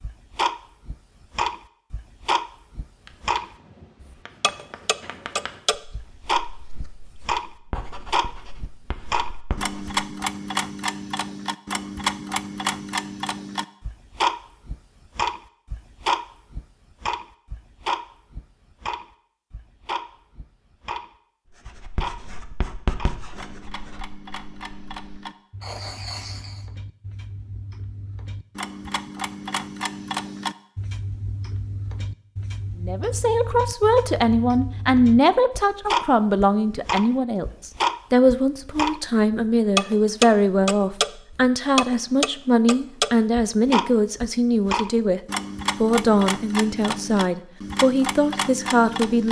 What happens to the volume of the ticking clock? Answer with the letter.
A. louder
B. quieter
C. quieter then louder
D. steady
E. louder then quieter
C.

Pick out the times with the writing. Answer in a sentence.
You can hear the writing from 3.0 to 10.1 s and from 21.5 to 26.6 s.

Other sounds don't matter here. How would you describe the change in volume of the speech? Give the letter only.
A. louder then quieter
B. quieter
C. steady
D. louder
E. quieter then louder
C.